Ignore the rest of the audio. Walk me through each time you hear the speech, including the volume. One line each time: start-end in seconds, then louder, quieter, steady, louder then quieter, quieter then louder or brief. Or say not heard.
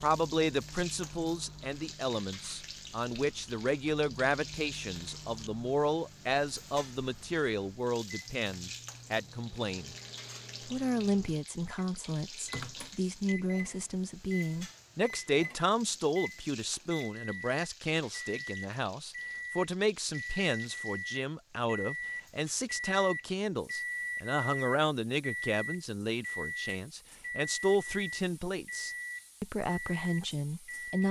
0.0-9.9 steady
10.7-31.0 steady.